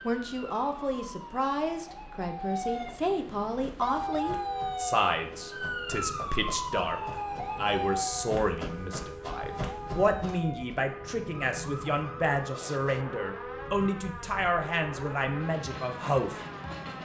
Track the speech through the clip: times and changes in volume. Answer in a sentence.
The speech can be heard from 0.1 to 16.4 s, at a steady volume.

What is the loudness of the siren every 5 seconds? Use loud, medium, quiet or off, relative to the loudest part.
loud, loud, medium, medium.